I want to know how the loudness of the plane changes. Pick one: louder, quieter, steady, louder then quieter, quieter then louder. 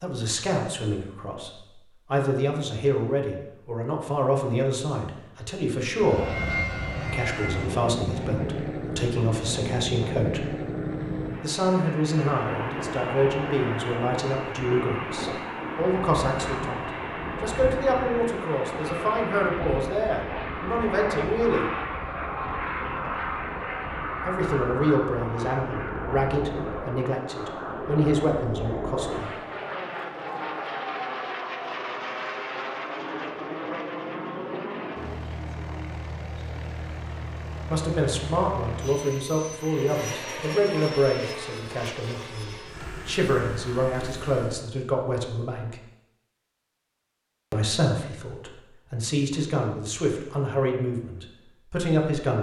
quieter.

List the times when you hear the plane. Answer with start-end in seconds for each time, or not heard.
6.0-44.6.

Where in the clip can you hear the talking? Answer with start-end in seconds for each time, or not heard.
0.0-10.4, 11.4-21.7, 24.2-29.3, 37.7-45.8, 47.5-52.3.